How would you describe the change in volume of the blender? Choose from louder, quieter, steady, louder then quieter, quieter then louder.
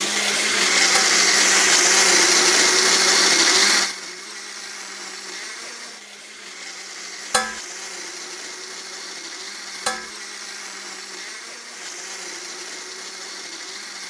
quieter.